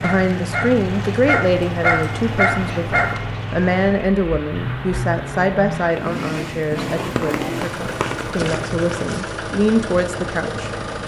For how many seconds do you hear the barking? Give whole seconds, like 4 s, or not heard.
3 s.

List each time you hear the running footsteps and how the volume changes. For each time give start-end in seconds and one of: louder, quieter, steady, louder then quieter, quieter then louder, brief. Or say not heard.
not heard.